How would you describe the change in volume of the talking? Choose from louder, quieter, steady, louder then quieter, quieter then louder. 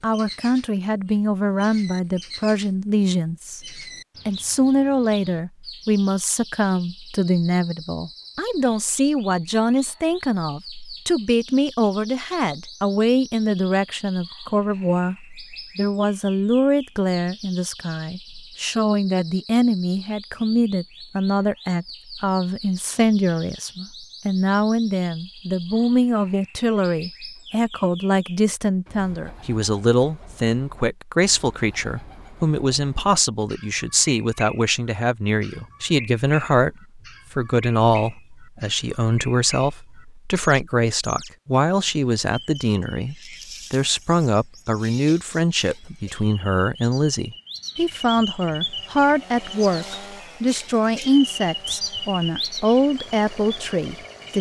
steady.